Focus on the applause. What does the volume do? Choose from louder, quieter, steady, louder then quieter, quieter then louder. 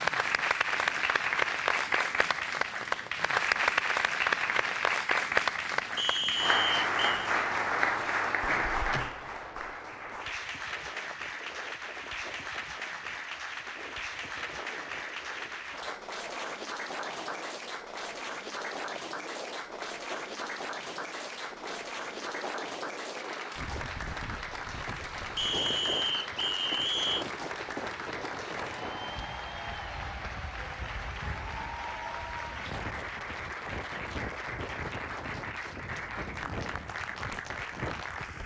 quieter.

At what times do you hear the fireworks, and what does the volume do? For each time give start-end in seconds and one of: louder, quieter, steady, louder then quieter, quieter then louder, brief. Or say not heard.
not heard.